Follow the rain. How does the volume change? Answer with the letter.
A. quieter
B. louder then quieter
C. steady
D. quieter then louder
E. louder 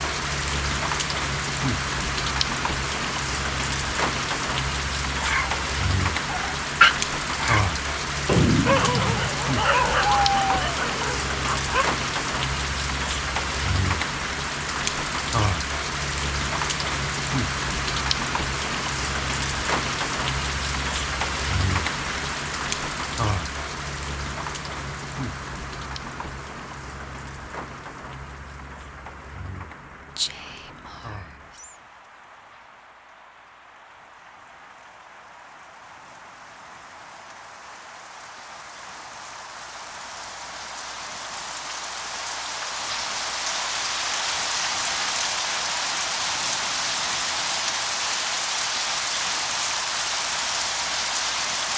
D.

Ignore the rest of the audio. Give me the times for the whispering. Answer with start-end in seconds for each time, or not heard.
30.1-31.8.